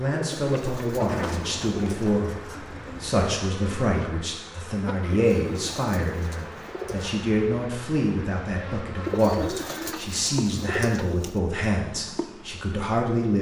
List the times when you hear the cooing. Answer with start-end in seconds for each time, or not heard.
0.1-2.2, 5.1-7.2, 9.0-11.4.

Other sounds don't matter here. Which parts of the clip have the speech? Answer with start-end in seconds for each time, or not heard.
0.0-2.4, 3.0-13.3.